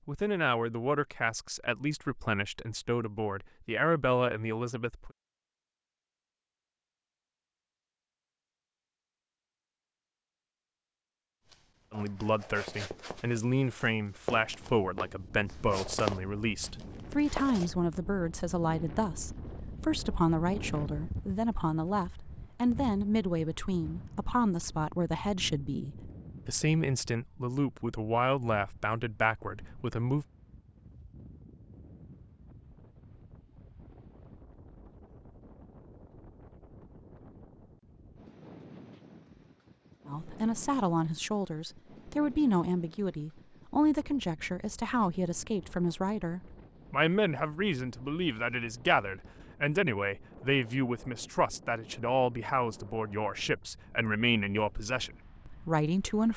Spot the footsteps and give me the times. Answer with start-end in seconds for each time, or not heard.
11.4-17.7.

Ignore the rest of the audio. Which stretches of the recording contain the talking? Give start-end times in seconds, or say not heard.
0.1-5.1, 11.9-30.2, 40.0-56.3.